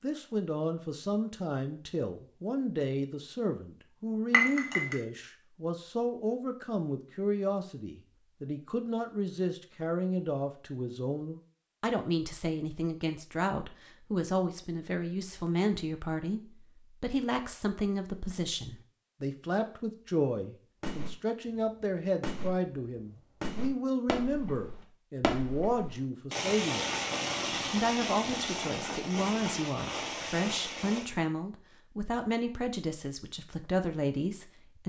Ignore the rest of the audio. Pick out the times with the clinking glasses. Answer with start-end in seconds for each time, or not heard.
4.3-5.0.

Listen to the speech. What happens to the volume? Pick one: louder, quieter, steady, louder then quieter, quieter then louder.
steady.